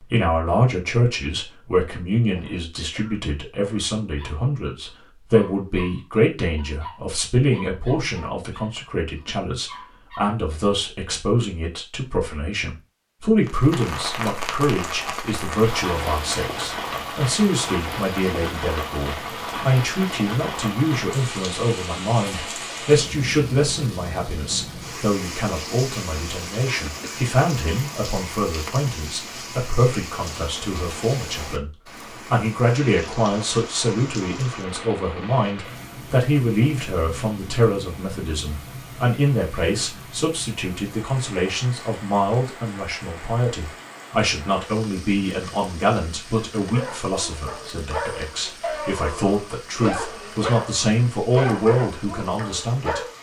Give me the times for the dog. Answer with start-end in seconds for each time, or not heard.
4.0-10.3, 46.6-53.1.